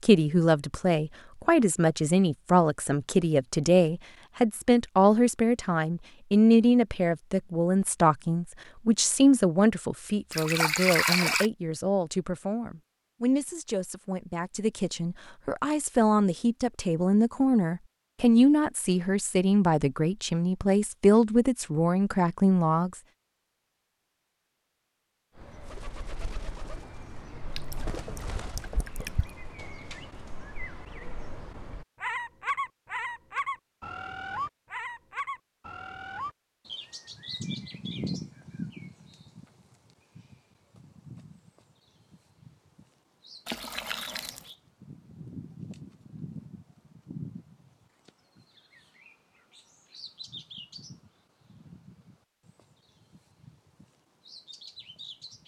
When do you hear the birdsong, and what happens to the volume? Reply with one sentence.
The birdsong can be heard from 25.4 to 55.4 s, getting louder then quieter.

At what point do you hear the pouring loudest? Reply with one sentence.
The volume of the pouring peaks at 11 seconds.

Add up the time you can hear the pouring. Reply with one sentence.
The pouring can be heard for 4 seconds in total.